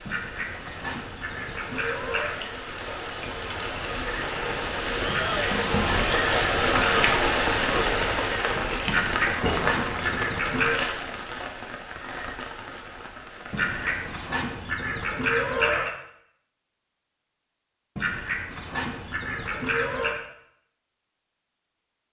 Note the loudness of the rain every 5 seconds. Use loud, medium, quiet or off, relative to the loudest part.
medium, loud, medium, off, off.